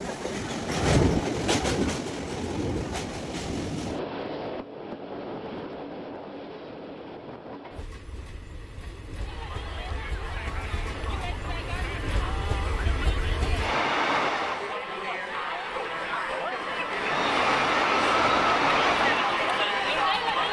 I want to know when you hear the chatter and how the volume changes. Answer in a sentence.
The chatter can be heard from 9.2 to 20.4 s, getting louder.